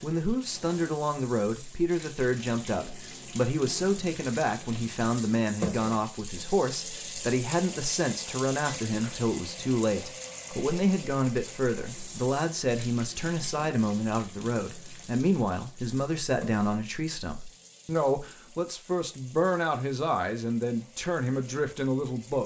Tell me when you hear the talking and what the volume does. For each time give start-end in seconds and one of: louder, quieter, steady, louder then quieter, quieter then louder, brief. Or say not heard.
0.0-22.4 steady.